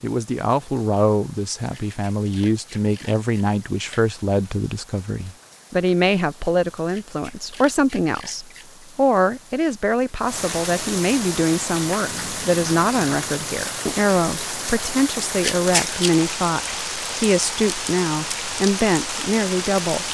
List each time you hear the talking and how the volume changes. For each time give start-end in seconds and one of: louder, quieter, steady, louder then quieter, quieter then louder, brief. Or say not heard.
0.0-20.0 steady.